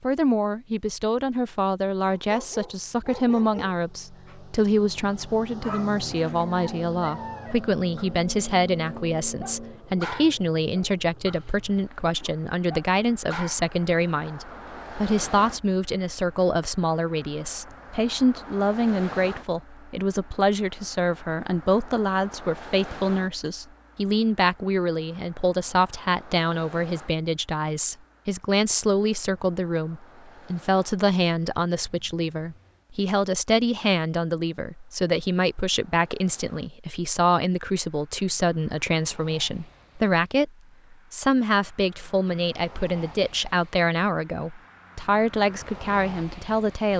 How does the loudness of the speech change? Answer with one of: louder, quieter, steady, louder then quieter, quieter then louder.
steady.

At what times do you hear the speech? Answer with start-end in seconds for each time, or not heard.
0.0-46.9.